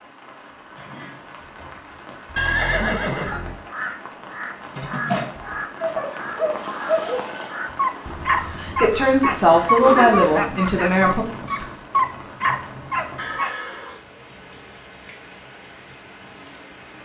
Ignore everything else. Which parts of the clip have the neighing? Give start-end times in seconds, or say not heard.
2.4-3.6, 6.5-7.6, 13.2-14.1.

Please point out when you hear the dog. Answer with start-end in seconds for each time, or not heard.
5.0-13.5.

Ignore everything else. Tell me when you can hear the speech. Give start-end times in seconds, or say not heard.
8.6-11.2.